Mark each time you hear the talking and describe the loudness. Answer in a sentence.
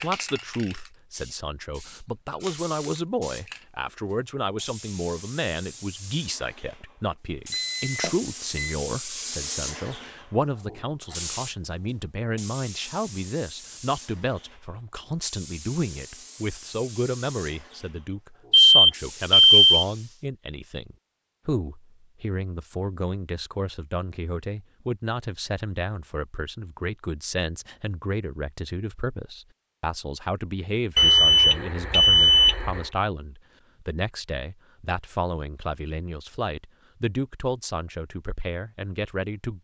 The talking can be heard from 0.0 to 39.5 s, at a steady volume.